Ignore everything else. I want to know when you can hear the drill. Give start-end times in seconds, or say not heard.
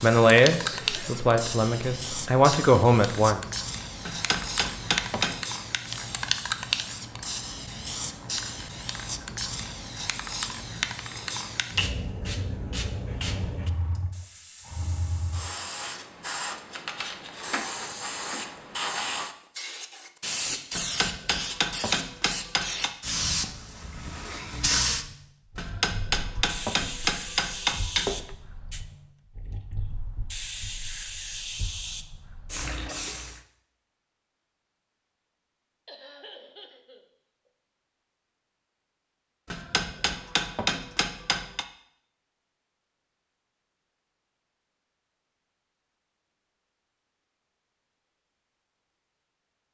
not heard.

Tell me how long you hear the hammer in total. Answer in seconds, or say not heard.
9 s.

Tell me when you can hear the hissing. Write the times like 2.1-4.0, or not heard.
0.0-33.4.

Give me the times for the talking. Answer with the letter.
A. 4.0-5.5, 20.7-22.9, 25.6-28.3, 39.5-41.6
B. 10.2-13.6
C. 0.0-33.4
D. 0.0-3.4
D.